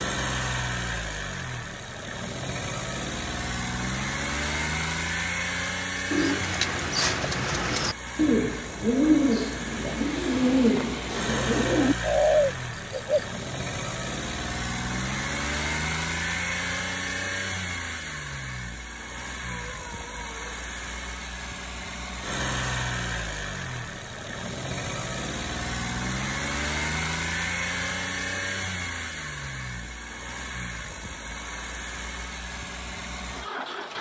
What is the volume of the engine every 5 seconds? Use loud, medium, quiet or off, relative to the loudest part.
loud, loud, loud, loud, loud, loud, medium.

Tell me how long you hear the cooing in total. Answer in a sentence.
You can hear the cooing for 7 seconds altogether.